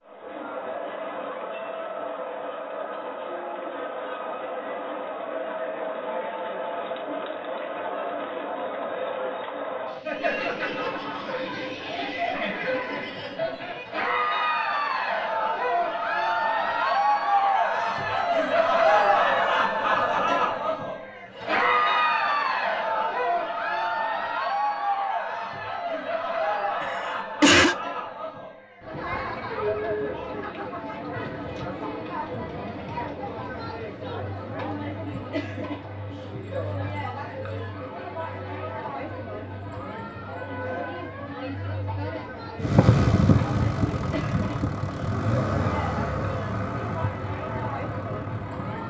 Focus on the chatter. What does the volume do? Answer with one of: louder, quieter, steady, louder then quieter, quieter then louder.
louder then quieter.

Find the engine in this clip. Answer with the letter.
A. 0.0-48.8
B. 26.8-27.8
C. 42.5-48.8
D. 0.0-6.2
C.